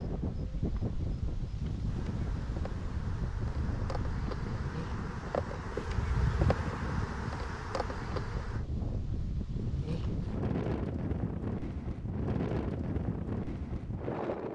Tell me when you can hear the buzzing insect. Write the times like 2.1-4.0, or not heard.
0.0-8.7.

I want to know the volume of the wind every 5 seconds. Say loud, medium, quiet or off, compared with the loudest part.
loud, medium, loud.